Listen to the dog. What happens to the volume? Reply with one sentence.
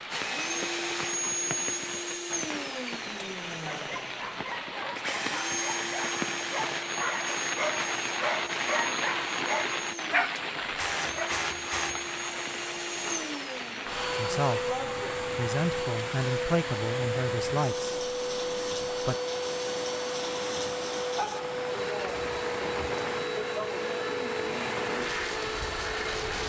The loudness of the dog goes up.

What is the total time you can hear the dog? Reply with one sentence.
You can hear the dog for 8 seconds altogether.